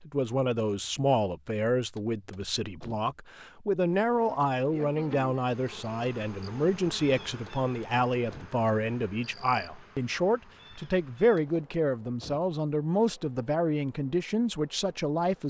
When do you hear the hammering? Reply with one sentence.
You can't hear the hammering here.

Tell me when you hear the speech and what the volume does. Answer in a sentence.
The speech can be heard from 0.0 to 15.4 s, at a steady volume.